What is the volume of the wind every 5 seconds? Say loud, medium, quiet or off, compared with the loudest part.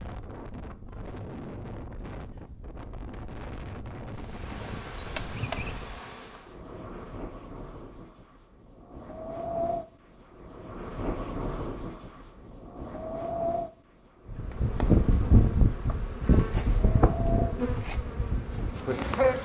medium, loud, loud, loud.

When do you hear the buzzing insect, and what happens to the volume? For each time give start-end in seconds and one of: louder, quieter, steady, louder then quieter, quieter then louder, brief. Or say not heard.
4.3-6.3 brief
14.2-19.4 quieter.